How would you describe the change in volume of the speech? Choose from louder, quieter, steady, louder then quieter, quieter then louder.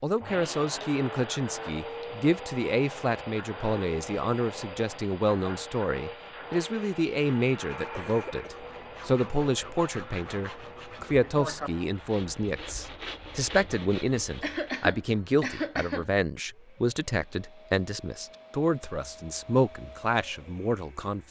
steady.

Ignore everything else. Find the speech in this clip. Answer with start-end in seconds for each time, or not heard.
0.0-21.2.